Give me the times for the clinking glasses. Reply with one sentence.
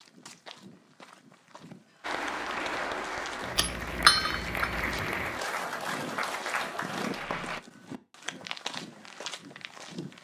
The clinking glasses can be heard from 3.5 to 4.9 s.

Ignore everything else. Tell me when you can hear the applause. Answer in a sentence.
You can hear the applause from 2.0 to 7.6 s.